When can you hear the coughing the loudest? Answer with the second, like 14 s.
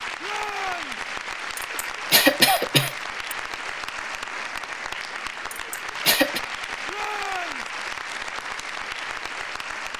2 s.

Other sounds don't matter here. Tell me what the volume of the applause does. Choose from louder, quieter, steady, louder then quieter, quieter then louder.
steady.